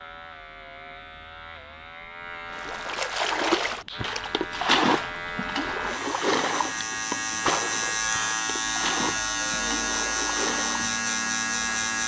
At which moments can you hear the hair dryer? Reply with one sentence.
The hair dryer can't be heard in this clip.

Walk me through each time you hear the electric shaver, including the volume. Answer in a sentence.
The electric shaver can be heard from 0.0 to 12.0 s, getting louder.